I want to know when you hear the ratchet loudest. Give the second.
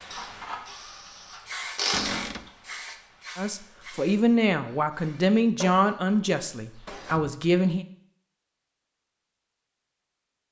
2 s.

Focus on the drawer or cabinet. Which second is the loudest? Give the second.
2 s.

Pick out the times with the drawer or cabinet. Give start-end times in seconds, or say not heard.
1.9-2.5, 6.8-7.4.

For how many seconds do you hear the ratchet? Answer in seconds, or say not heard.
2 s.